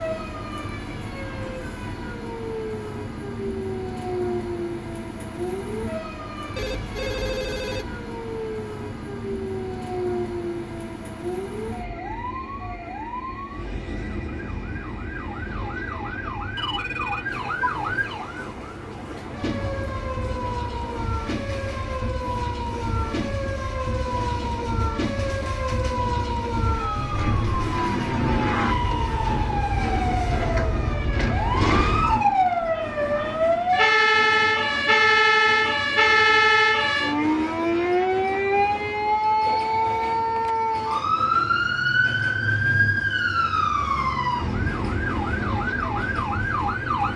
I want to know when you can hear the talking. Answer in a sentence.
The talking can't be heard in this clip.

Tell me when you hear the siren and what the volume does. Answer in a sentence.
You can hear the siren from 0.0 to 47.1 s, getting louder.